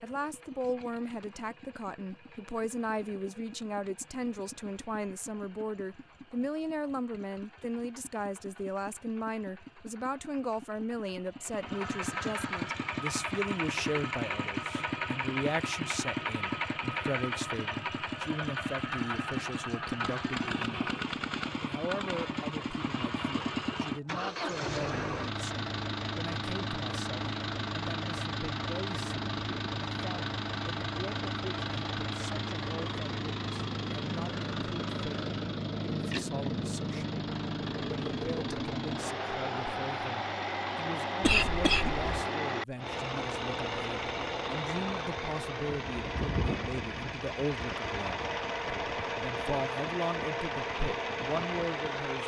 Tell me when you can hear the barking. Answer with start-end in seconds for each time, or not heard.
not heard.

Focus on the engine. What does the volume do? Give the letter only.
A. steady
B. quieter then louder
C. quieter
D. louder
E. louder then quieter
D.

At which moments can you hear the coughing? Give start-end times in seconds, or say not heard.
41.2-42.3.